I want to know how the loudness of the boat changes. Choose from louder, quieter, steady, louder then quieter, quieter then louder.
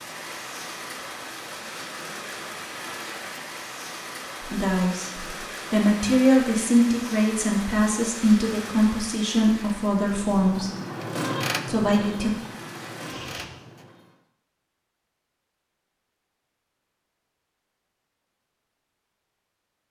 louder then quieter.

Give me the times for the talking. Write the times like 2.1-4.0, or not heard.
4.5-10.7, 11.7-12.3.